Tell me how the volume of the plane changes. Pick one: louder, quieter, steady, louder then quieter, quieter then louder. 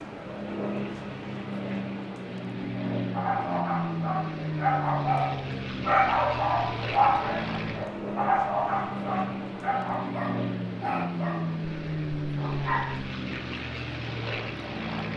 steady.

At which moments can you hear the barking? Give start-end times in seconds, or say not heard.
2.6-13.1.